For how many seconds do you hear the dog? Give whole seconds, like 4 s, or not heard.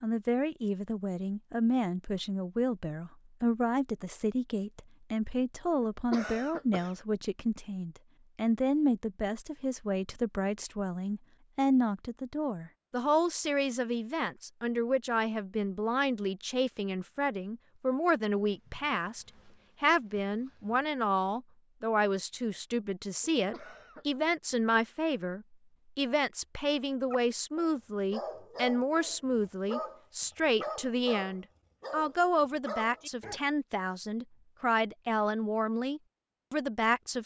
6 s.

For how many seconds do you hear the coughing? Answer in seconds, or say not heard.
2 s.